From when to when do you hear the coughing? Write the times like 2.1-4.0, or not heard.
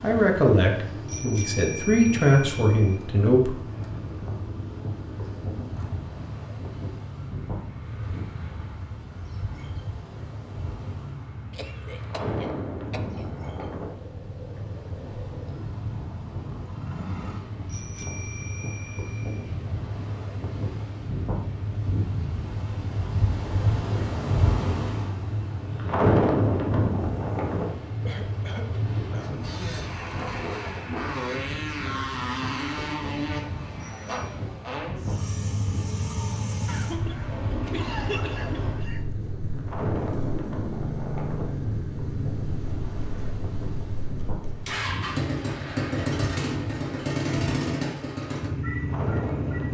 11.5-13.2, 28.1-29.4, 36.6-39.0.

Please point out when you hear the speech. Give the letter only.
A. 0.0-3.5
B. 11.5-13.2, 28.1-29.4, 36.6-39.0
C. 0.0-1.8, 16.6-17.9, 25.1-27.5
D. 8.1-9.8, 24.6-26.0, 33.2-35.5
A.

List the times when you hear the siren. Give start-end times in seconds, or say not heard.
not heard.